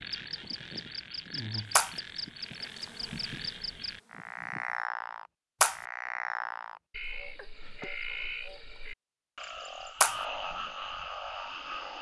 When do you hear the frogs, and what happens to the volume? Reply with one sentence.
You can hear the frogs from 0.0 to 11.9 s, at a steady volume.